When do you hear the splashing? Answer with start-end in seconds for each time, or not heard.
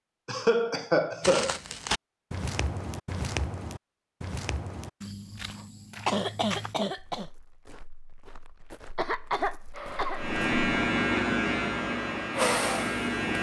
not heard.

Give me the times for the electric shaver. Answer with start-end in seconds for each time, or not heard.
10.2-13.3.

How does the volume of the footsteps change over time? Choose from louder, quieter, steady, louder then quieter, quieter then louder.
quieter.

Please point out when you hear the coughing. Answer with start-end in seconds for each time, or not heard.
0.2-1.6, 6.0-7.2, 8.9-10.2.